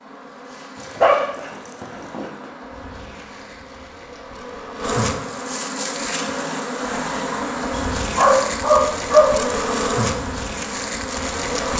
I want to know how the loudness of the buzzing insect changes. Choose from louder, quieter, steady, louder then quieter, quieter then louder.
louder.